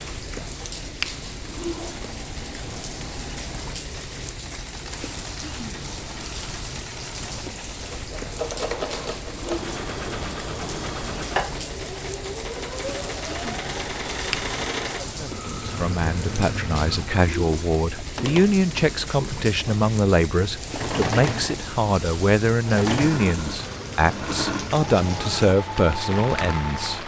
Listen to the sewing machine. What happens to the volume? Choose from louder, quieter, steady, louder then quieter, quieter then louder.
louder.